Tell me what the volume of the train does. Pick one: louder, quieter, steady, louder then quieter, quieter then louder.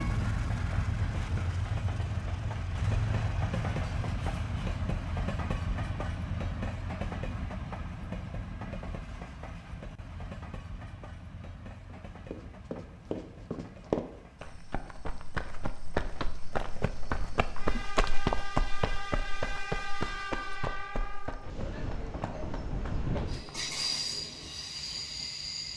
quieter then louder.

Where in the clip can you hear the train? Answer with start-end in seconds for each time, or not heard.
0.0-25.7.